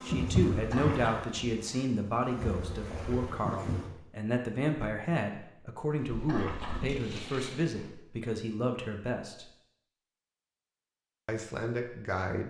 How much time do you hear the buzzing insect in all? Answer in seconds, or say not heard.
6 s.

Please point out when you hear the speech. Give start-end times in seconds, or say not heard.
0.0-9.5, 11.2-12.4.